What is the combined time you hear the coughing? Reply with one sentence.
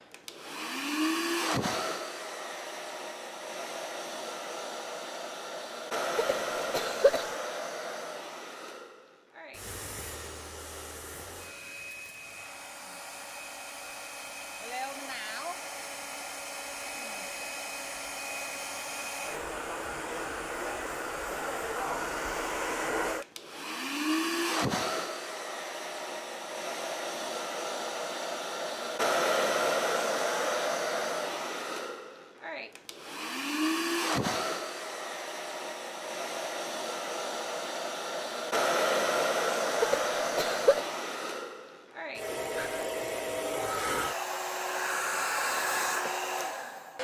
The coughing can be heard for 2 seconds in total.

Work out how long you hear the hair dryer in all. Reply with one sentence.
The hair dryer can be heard for 47 seconds in total.